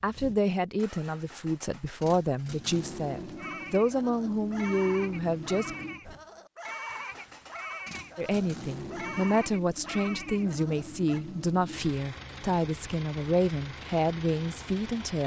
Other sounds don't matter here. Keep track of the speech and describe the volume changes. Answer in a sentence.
The volume of the speech stays about the same.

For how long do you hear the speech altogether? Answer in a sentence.
You can hear the speech for 13 seconds altogether.